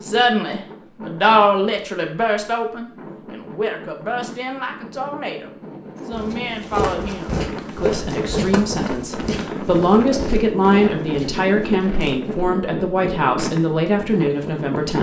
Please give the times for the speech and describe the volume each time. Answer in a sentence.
The speech can be heard from 0.0 to 14.9 s, getting quieter then louder.